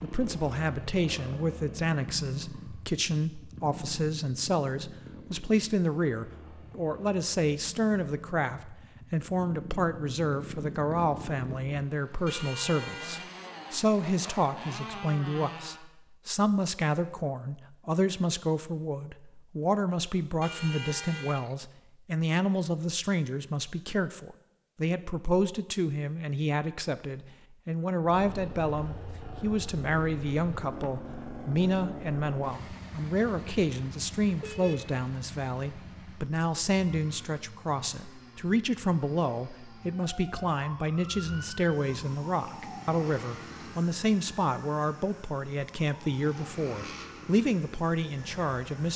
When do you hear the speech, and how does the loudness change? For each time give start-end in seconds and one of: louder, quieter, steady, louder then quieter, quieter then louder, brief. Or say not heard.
0.0-48.9 steady.